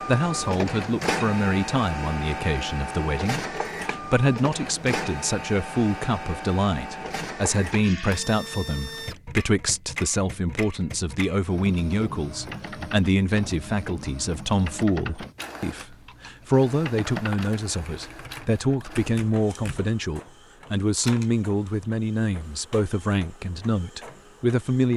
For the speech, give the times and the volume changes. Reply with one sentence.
You can hear the speech from 0.1 to 24.9 s, at a steady volume.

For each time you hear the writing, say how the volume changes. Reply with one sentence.
The writing can't be heard in this clip.